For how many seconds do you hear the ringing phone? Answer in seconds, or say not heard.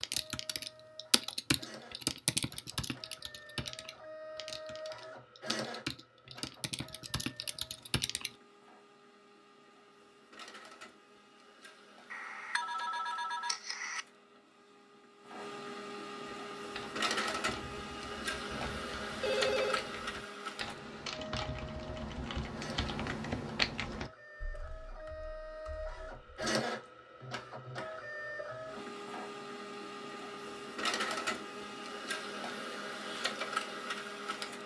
3 s.